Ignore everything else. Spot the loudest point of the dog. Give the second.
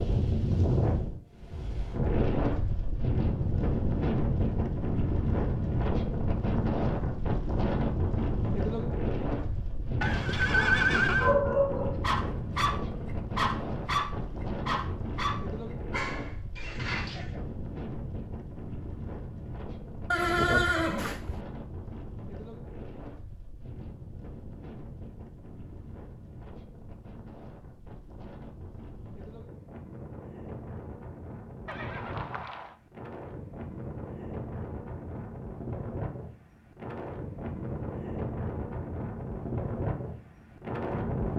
11 s.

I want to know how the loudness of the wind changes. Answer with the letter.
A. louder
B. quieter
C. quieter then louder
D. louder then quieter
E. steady
C.